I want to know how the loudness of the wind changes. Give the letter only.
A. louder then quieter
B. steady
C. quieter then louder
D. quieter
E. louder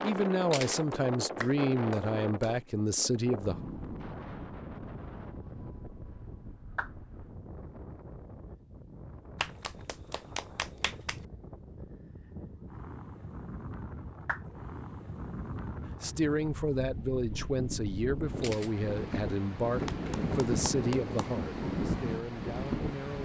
C.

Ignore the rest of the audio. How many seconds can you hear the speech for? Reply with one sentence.
You can hear the speech for 11 seconds altogether.